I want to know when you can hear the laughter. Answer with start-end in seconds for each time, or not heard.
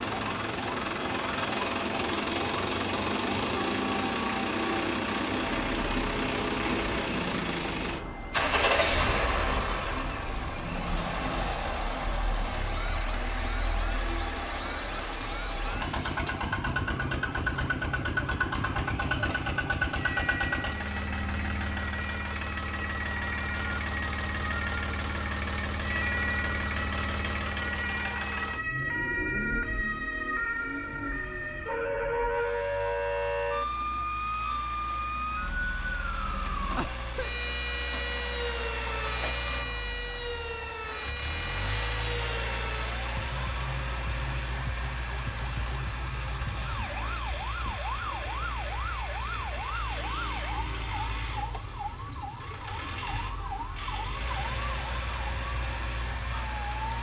not heard.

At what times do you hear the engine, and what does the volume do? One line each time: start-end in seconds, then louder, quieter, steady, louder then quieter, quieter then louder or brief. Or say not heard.
0.0-56.9 quieter.